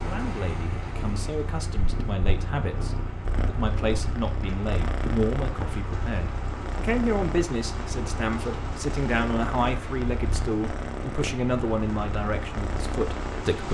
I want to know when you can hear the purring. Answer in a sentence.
You can hear the purring from 0.0 to 13.6 s.